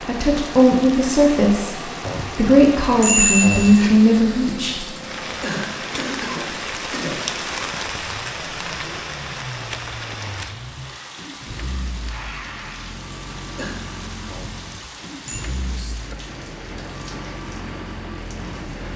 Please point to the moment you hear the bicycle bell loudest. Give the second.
3 s.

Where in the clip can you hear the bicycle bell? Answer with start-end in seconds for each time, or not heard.
2.0-3.9, 14.3-15.4.